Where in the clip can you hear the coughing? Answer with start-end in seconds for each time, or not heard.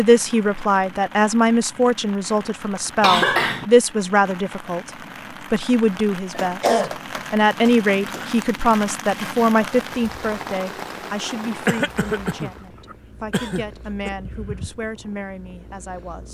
3.0-3.6, 6.3-8.2, 11.7-14.1.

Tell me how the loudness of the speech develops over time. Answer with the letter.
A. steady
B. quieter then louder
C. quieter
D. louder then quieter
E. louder
C.